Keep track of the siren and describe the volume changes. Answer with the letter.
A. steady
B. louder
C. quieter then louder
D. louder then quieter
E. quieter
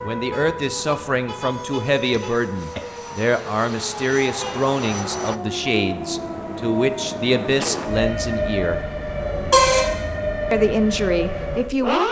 B.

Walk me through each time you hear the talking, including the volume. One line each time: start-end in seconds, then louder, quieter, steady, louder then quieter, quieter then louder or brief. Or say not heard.
0.0-8.8 steady
10.5-12.0 brief.